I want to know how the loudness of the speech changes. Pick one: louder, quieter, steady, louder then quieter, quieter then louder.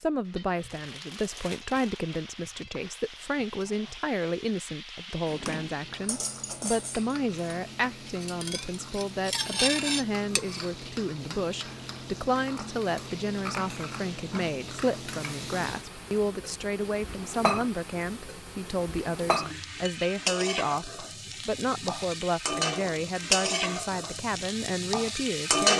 steady.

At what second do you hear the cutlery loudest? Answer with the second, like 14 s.
10 s.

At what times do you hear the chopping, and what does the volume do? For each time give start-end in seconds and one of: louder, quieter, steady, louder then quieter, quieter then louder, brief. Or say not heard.
not heard.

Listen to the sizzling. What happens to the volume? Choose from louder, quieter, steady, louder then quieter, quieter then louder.
louder.